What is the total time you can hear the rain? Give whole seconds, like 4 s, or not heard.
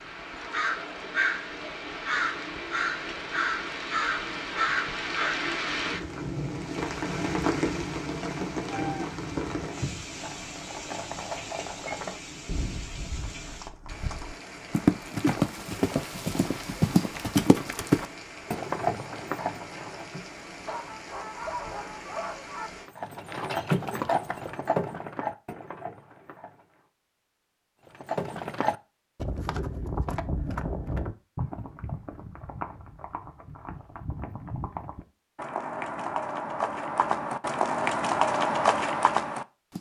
23 s.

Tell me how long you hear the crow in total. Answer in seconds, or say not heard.
5 s.